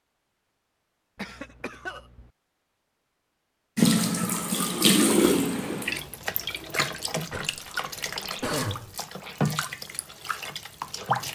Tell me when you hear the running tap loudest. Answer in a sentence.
The loudest moment of the running tap is at 5 seconds.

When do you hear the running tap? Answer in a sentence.
The running tap can be heard from 3.8 to 11.2 s.